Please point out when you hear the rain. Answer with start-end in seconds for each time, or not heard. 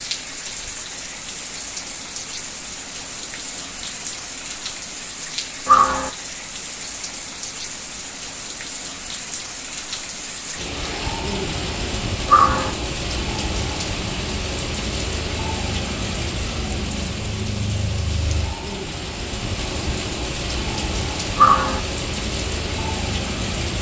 0.0-23.7.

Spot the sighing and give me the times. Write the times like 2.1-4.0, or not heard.
5.7-6.1, 12.2-12.8, 21.4-21.8.